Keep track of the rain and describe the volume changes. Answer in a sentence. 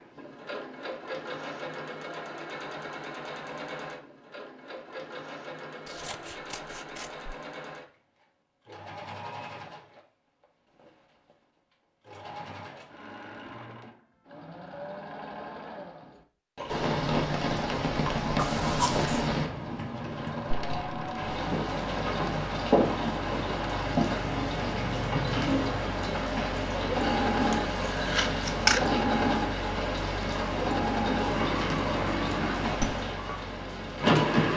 The volume of the rain stays about the same.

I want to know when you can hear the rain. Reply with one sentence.
The rain can be heard from 16.6 to 34.5 s.